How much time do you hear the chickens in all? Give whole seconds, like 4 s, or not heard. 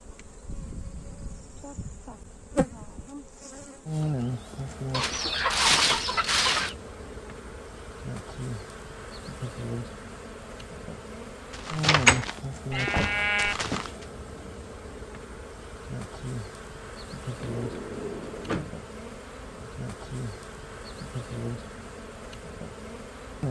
2 s.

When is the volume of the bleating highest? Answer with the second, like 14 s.
12 s.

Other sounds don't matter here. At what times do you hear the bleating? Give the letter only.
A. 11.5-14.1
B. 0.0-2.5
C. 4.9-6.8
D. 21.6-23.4
A.